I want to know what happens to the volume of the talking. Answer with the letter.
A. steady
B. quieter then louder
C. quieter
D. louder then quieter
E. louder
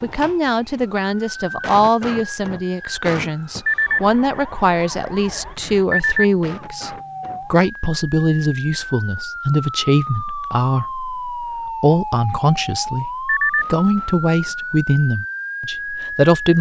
A.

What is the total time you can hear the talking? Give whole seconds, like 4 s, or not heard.
16 s.